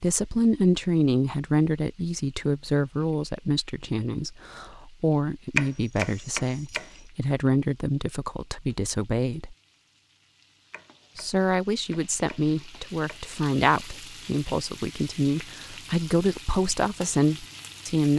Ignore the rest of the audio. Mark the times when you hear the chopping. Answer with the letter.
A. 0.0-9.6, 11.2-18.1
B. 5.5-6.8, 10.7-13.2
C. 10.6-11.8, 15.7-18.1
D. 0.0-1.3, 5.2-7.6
B.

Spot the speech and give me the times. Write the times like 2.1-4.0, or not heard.
0.0-9.6, 11.2-18.1.